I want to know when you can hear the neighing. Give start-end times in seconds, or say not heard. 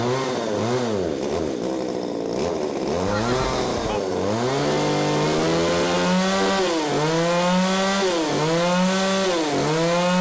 3.0-4.0.